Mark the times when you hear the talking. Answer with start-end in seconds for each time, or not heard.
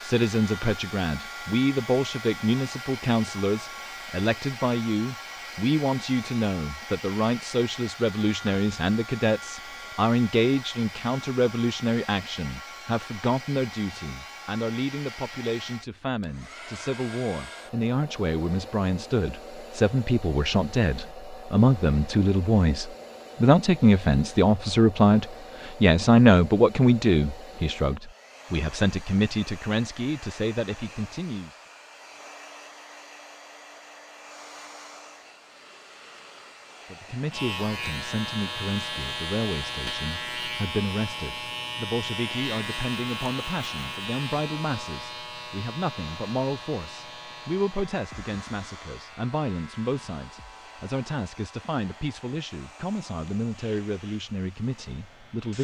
0.0-31.5, 36.9-55.5.